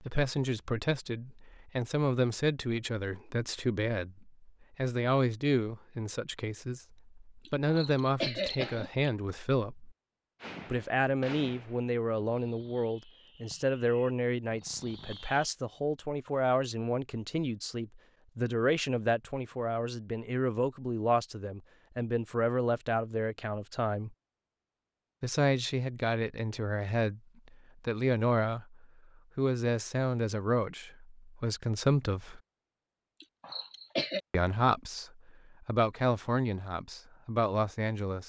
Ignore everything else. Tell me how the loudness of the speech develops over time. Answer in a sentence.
The volume of the speech stays about the same.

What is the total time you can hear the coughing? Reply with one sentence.
The coughing can be heard for 3 seconds in total.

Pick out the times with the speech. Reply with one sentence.
You can hear the speech from 0.0 to 9.9 s, from 10.7 to 24.1 s, from 25.2 to 32.4 s and from 34.3 to 38.2 s.